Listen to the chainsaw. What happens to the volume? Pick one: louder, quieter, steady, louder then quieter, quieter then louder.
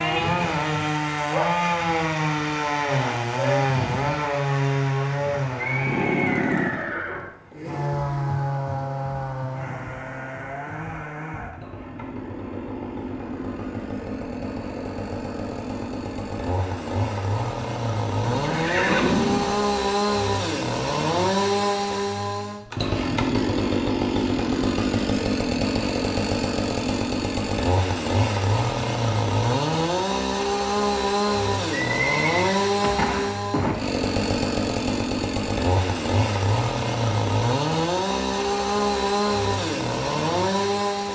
quieter then louder.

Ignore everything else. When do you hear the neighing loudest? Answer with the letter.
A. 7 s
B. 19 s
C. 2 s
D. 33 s
B.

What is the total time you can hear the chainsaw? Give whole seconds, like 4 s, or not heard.
41 s.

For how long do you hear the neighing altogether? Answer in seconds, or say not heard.
5 s.